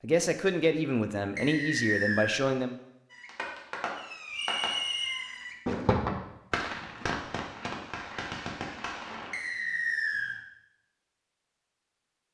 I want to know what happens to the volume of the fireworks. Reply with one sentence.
The loudness of the fireworks goes up, then down.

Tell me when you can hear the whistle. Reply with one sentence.
You can hear the whistle from 1.4 to 2.4 s, from 4.3 to 5.2 s and from 9.3 to 10.3 s.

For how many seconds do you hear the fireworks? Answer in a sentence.
You can hear the fireworks for 6 seconds altogether.